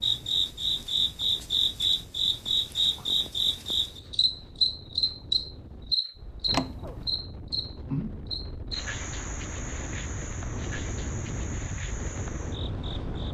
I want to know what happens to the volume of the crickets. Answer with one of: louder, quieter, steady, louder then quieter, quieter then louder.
quieter.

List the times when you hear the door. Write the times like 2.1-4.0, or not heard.
6.5-7.2.